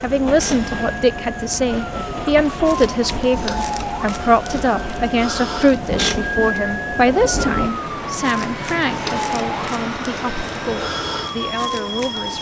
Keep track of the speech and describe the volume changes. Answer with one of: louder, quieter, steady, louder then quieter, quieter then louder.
quieter.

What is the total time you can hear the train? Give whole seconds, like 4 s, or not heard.
12 s.